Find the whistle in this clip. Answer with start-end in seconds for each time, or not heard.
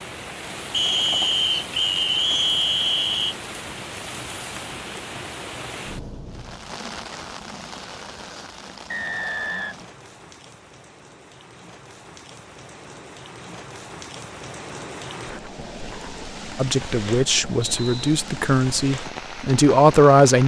0.7-3.4, 8.9-9.8, 17.7-18.2.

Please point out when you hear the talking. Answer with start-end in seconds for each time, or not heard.
16.6-20.4.